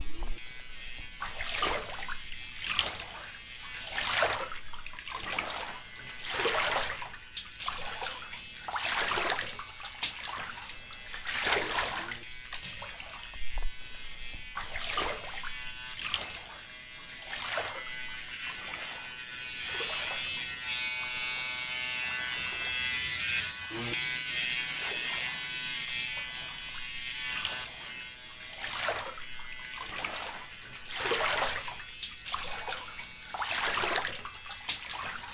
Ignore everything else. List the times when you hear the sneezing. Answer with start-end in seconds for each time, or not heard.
not heard.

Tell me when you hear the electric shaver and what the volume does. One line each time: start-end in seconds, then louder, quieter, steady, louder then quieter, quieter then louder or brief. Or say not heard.
0.0-35.3 louder then quieter.